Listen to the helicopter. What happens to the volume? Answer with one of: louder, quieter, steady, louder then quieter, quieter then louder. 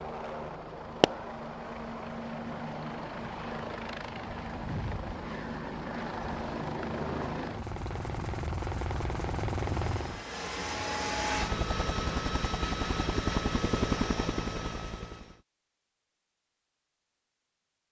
louder.